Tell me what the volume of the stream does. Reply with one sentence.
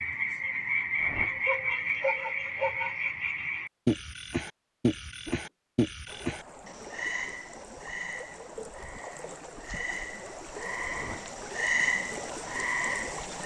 The loudness of the stream goes up.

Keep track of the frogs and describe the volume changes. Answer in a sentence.
The loudness of the frogs goes down, then up.